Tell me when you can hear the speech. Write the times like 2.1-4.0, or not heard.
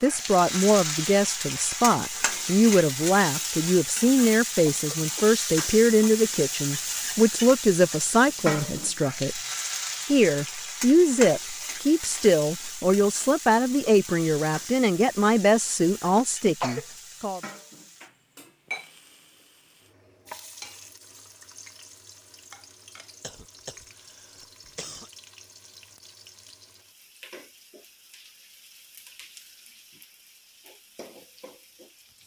0.0-9.4, 10.1-17.4.